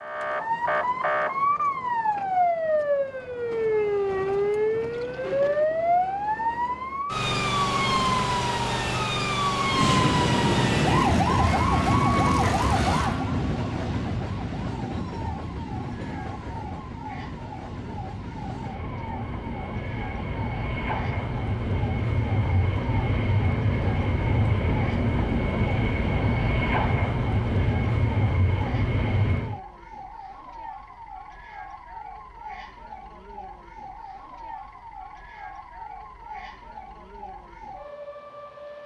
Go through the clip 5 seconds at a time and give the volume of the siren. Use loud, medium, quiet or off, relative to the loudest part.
loud, loud, loud, quiet, quiet, quiet, quiet, quiet.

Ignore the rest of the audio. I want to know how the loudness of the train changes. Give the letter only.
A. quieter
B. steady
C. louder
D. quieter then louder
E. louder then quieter
D.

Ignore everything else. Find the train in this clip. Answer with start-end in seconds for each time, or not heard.
9.6-29.6.